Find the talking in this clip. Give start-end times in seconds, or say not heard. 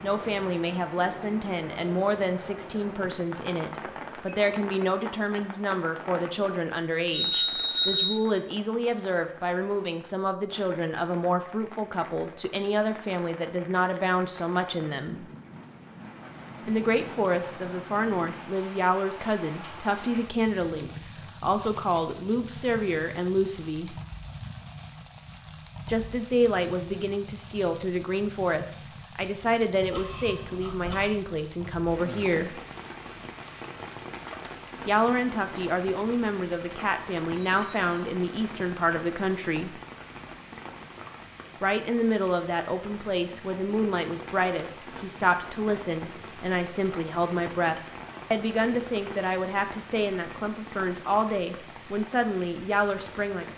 0.0-15.2, 16.6-23.9, 25.9-32.5, 34.9-39.8, 41.6-53.5.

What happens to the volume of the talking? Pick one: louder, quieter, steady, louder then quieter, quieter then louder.
steady.